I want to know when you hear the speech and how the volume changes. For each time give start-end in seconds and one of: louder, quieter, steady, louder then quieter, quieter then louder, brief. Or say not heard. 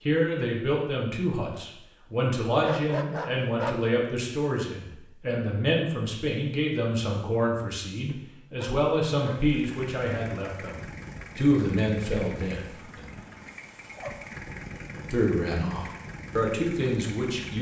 0.1-13.1 steady
14.9-17.5 brief.